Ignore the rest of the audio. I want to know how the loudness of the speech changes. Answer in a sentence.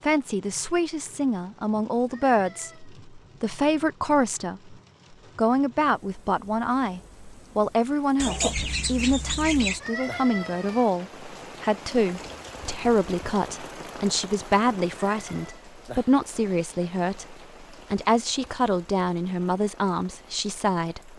The volume of the speech stays about the same.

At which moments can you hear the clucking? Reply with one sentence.
The clucking can be heard from 8.2 to 9.8 s.